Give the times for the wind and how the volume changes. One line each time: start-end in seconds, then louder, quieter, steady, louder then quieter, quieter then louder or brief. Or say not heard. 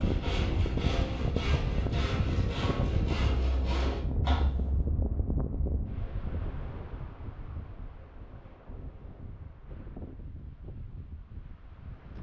0.0-12.1 quieter.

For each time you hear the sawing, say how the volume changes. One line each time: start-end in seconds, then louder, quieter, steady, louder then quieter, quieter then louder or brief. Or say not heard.
0.0-4.7 steady.